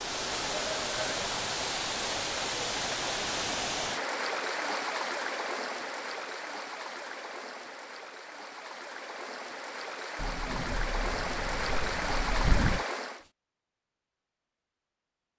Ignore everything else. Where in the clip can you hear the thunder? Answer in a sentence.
The thunder can be heard from 10.2 to 12.8 s.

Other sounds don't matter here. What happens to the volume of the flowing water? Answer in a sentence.
The loudness of the flowing water goes down, then up.